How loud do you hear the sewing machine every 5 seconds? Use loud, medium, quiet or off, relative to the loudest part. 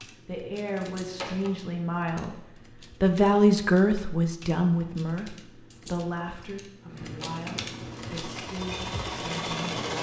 off, loud.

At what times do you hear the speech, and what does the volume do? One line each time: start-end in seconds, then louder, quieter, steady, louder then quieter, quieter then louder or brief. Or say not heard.
0.2-2.4 brief
3.0-9.9 quieter.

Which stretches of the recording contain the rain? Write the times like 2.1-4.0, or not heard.
not heard.